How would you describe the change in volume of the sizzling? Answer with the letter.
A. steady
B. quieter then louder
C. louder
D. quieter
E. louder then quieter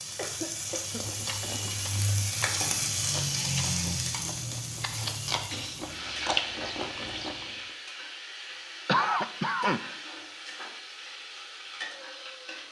D.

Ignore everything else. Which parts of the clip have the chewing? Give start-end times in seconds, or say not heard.
0.9-7.5.